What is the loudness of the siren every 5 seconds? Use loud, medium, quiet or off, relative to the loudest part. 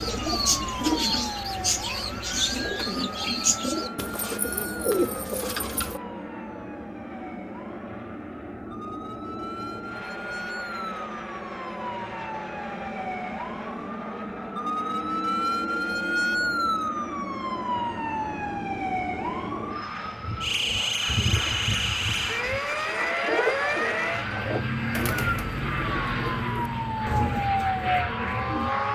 medium, quiet, medium, loud, loud, loud.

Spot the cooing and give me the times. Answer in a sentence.
You can hear the cooing from 0.0 to 6.0 s and from 20.2 to 28.8 s.